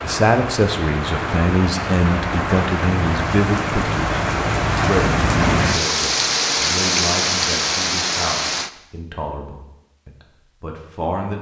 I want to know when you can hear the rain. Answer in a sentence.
The rain can be heard from 0.0 to 8.7 s.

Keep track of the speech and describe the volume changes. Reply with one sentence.
The loudness of the speech goes down.